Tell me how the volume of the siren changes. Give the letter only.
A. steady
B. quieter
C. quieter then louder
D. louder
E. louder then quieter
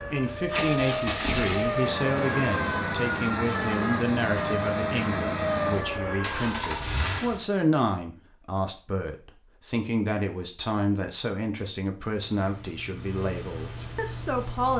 A.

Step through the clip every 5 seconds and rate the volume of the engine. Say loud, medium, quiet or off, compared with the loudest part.
loud, loud, medium.